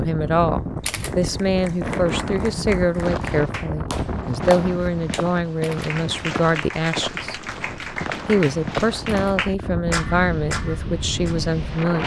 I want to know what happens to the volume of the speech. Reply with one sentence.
The volume of the speech stays about the same.